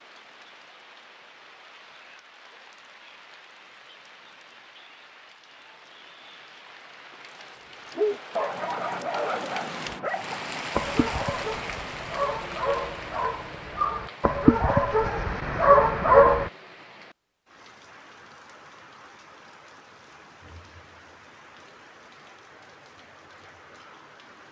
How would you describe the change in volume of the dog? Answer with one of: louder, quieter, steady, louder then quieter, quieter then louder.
louder.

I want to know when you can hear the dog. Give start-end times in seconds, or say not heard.
8.0-16.5.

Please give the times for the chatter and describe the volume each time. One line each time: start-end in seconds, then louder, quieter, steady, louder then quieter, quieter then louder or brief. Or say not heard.
not heard.